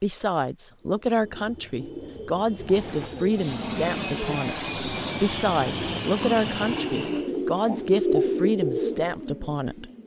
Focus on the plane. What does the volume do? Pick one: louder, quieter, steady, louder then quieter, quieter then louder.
steady.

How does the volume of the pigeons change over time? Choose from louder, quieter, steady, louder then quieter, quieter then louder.
louder.